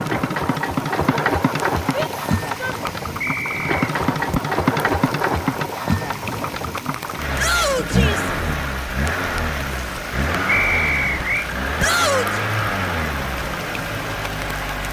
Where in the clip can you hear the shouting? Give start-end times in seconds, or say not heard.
1.9-2.8, 7.3-8.3, 11.8-12.4.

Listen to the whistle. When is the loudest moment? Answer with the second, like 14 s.
11 s.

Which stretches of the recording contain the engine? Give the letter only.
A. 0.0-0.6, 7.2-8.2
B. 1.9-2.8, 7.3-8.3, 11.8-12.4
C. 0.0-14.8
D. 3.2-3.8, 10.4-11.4
C.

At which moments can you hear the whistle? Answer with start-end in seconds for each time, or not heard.
3.2-3.8, 10.4-11.4.